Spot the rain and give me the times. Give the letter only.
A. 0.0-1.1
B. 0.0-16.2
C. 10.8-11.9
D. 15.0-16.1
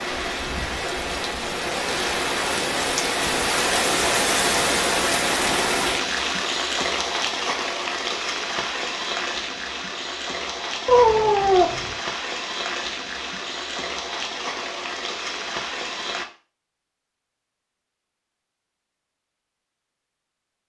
B.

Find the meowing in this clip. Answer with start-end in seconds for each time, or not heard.
10.8-11.9.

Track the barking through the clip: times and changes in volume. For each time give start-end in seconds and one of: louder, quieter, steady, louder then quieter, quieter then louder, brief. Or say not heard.
not heard.